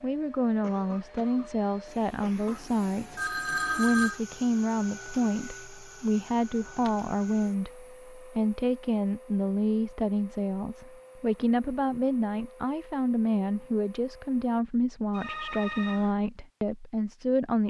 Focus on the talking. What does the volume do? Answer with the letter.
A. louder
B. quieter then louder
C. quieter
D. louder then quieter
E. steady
E.